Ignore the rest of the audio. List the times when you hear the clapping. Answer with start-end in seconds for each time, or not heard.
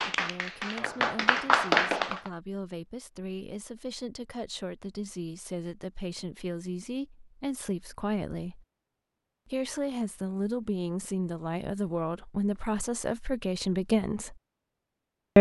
0.0-2.3.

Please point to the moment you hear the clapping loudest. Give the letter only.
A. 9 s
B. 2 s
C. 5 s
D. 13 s
B.